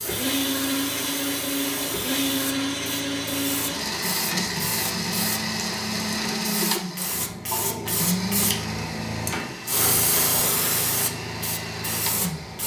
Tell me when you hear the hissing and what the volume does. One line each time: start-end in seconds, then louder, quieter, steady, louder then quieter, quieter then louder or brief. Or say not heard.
0.0-12.6 louder.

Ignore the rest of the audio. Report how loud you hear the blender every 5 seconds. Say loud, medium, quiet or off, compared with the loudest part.
loud, loud, medium.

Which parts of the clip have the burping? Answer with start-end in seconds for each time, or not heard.
6.6-8.1.